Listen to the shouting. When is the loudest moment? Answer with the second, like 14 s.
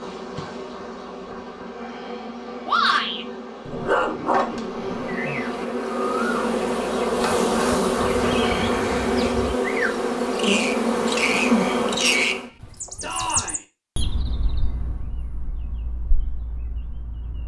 3 s.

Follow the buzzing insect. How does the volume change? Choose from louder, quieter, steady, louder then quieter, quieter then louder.
louder.